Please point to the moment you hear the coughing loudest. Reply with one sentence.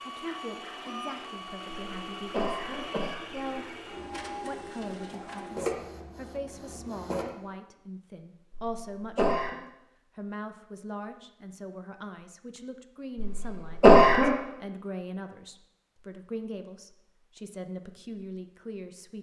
The volume of the coughing peaks at 14 seconds.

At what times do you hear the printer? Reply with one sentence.
The printer can be heard from 0.0 to 7.3 s.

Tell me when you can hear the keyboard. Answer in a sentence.
The keyboard can't be heard in this clip.